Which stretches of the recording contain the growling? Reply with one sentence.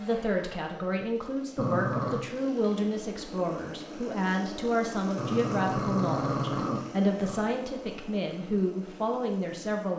The growling can be heard from 1.6 to 2.2 s and from 5.2 to 7.4 s.